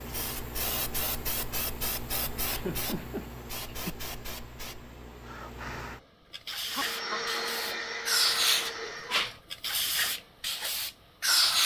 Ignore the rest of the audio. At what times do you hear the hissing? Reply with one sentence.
The hissing can be heard from 0.0 to 11.6 s.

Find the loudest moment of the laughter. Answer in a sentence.
The loudest moment of the laughter is at 3 seconds.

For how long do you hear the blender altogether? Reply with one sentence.
The blender can be heard for 3 seconds in total.